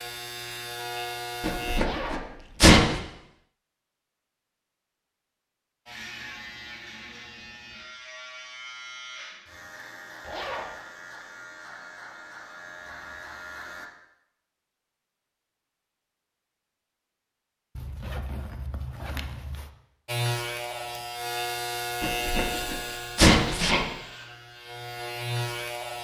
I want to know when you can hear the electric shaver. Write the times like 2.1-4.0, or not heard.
0.0-1.8, 5.8-13.9, 20.1-25.9.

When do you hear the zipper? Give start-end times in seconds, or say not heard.
1.8-2.2, 10.2-10.8, 17.8-19.7.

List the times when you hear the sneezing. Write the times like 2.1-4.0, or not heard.
1.4-3.0, 22.0-23.9.